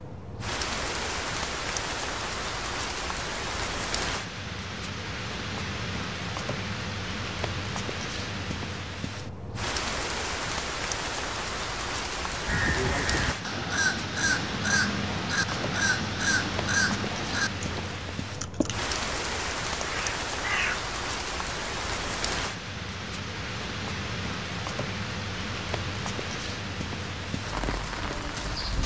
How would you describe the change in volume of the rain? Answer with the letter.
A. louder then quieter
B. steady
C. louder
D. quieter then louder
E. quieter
B.